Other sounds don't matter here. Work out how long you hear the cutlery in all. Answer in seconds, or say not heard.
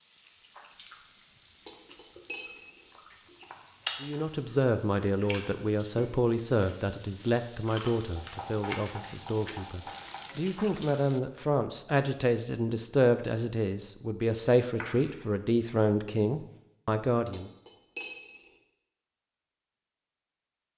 2 s.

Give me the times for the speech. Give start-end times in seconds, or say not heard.
4.0-17.5.